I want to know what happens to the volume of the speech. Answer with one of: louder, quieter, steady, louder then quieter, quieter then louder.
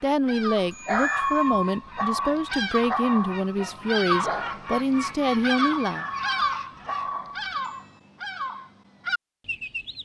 steady.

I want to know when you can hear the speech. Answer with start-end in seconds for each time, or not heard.
0.0-6.0.